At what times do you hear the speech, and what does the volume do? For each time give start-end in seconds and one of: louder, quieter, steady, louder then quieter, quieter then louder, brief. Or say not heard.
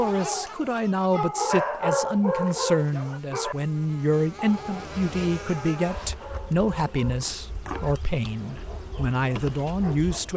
0.0-10.3 steady.